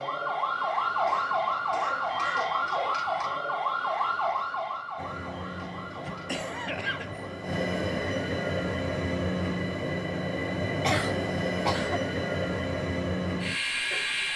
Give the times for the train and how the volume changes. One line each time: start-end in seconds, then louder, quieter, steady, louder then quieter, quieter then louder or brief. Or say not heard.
5.0-14.3 louder.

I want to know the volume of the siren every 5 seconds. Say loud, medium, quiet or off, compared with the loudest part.
loud, quiet, off.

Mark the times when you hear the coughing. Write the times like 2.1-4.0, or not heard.
0.9-3.0, 6.0-7.2, 10.8-12.0.